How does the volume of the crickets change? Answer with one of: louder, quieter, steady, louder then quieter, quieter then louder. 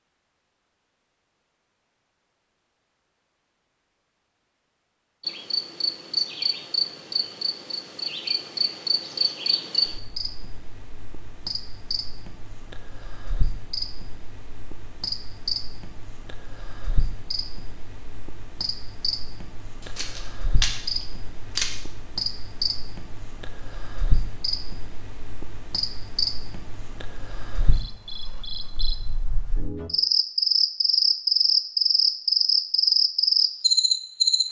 quieter then louder.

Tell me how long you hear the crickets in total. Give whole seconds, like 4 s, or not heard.
29 s.